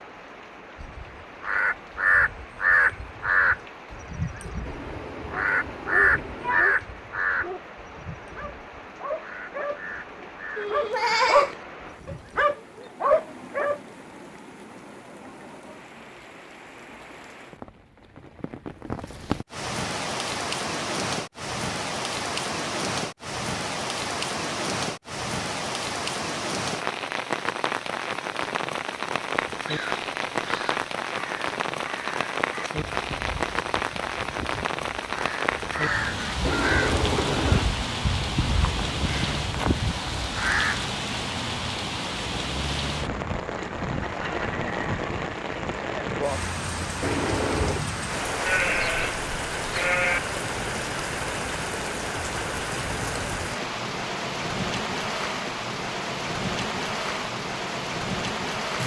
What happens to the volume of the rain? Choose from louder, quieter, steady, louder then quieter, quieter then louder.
louder.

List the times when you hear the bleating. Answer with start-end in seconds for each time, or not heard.
10.6-11.6, 48.5-50.2.